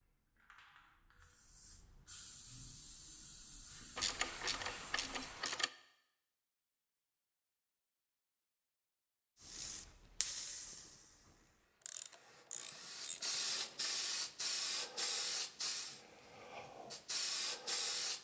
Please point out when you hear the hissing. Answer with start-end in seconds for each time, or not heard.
0.0-5.5, 9.4-18.1.